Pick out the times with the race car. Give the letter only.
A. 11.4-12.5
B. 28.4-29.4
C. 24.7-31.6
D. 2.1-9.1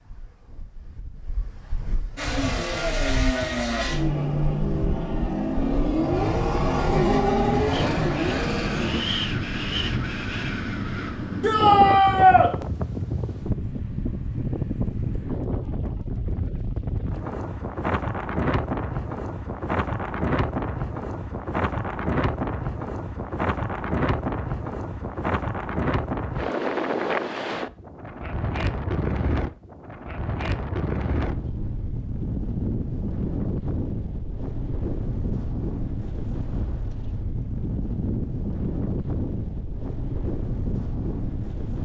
D.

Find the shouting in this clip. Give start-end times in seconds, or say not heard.
11.4-12.5.